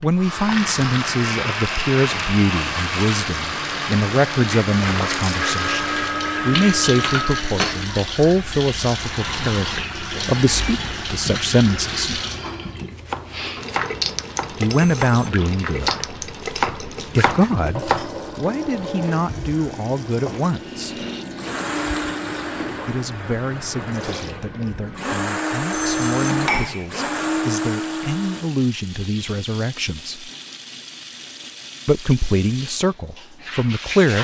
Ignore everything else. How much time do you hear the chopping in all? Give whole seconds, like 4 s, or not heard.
6 s.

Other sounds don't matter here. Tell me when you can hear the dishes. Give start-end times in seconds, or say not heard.
2.0-3.3, 26.2-26.9.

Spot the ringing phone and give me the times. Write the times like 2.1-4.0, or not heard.
5.5-7.4, 14.7-15.5, 25.7-26.5.